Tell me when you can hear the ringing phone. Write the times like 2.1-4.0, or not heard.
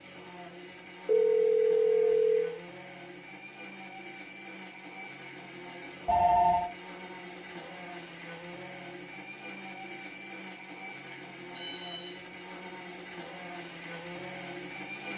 1.1-2.5, 6.0-6.7, 11.1-12.2.